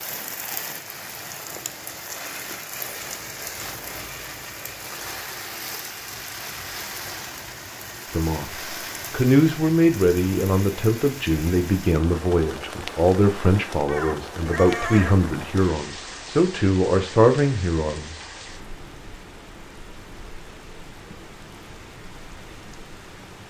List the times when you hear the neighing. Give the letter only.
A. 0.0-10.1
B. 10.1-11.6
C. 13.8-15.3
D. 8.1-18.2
C.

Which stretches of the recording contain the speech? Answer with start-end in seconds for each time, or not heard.
8.1-18.2.